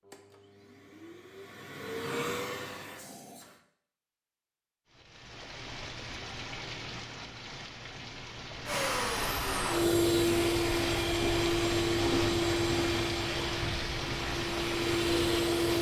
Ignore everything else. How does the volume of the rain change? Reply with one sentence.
The volume of the rain goes up.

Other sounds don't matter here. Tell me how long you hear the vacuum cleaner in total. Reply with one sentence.
You can hear the vacuum cleaner for 11 seconds altogether.